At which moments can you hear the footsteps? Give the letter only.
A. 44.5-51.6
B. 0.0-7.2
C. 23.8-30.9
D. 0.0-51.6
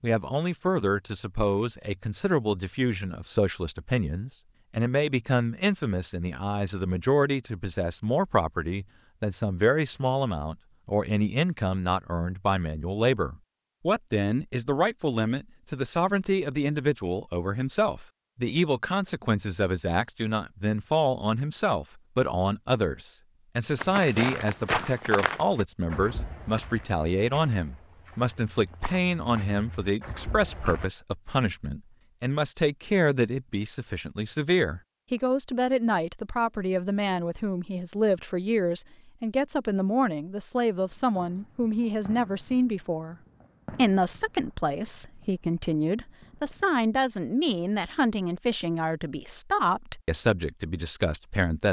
C.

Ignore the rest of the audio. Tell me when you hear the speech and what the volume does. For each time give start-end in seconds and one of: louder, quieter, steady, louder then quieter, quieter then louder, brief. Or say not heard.
0.0-51.6 steady.